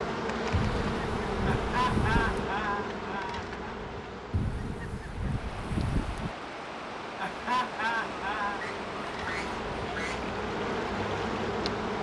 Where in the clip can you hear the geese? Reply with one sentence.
You can hear the geese from 0.5 to 2.5 s, from 4.3 to 6.3 s and from 8.6 to 10.3 s.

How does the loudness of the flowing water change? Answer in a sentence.
The loudness of the flowing water stays about the same.